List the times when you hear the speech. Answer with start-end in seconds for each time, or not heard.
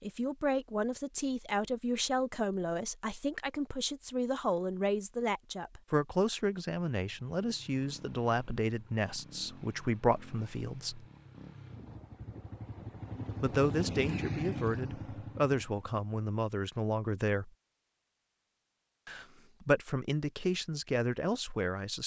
0.0-11.1, 13.4-17.5, 19.1-22.0.